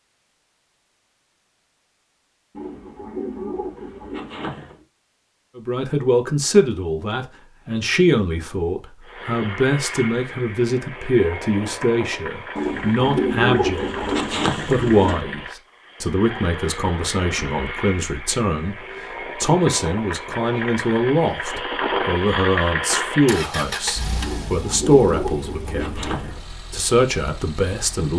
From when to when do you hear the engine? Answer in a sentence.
You can hear the engine from 9.0 to 28.1 s.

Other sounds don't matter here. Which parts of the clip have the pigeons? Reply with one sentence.
The pigeons can be heard from 2.5 to 4.8 s, from 12.6 to 15.2 s and from 24.2 to 26.4 s.